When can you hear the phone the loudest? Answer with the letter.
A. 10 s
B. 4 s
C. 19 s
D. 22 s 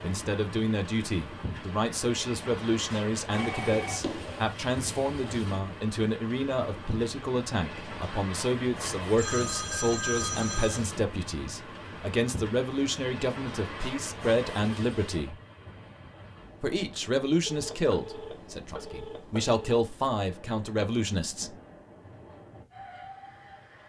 A.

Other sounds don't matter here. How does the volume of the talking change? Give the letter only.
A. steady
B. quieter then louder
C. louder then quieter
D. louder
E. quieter
A.